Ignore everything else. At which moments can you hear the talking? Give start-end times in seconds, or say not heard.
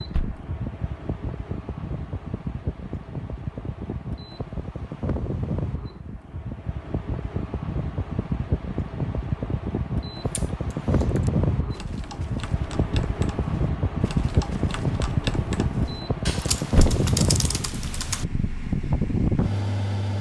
not heard.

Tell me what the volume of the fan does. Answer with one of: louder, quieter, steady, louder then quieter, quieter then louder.
louder.